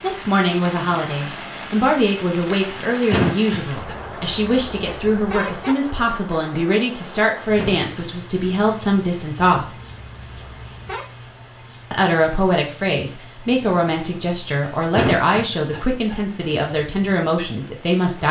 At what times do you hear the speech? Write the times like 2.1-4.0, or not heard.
0.0-9.7, 11.9-18.2.